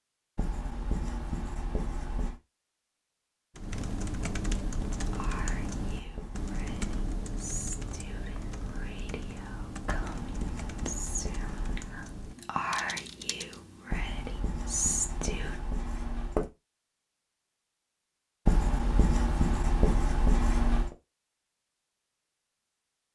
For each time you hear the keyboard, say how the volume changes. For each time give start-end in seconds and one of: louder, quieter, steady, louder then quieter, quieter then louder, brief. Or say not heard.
3.5-13.7 quieter.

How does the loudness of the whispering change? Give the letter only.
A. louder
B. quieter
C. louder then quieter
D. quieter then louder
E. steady
A.